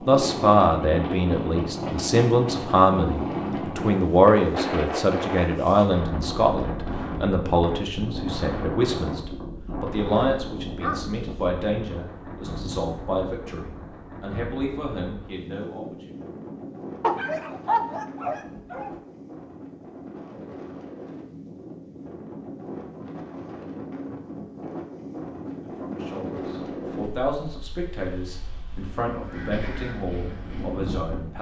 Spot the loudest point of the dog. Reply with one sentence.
The loudest moment of the dog is at 18 seconds.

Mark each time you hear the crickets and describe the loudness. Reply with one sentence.
The crickets can't be heard in this clip.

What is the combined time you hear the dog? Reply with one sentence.
The dog can be heard for 3 seconds in total.